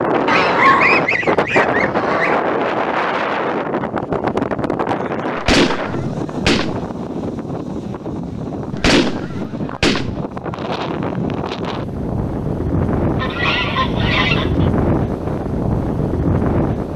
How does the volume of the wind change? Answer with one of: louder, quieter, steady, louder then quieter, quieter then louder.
quieter then louder.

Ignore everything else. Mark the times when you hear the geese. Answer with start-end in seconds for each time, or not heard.
0.2-2.5, 5.3-6.8, 8.7-10.2, 13.2-14.7.